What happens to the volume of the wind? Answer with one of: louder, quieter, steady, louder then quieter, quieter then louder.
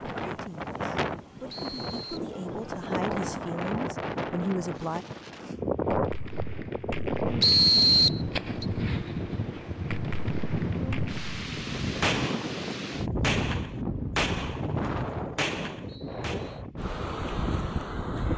steady.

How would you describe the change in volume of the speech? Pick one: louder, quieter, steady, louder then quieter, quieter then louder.
louder.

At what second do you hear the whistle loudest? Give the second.
8 s.